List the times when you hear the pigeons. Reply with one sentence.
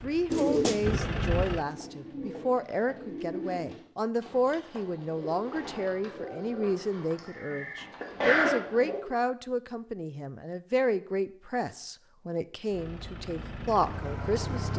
The pigeons can be heard from 0.3 to 9.1 s.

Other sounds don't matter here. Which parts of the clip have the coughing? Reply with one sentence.
You can hear the coughing from 7.2 to 8.8 s.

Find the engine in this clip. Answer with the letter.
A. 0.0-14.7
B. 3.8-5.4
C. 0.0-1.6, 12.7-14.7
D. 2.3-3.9
C.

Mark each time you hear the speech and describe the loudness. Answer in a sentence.
You can hear the speech from 0.0 to 14.7 s, at a steady volume.